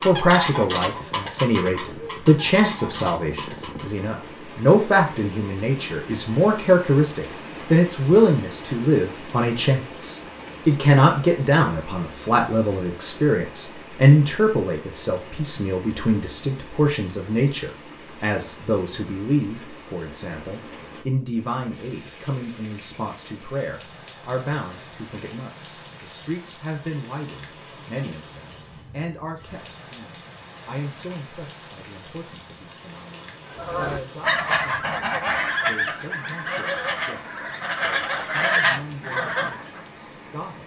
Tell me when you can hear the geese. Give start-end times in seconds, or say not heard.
0.0-3.9, 33.5-39.9.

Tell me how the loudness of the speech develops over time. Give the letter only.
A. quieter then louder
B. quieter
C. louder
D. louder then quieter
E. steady
B.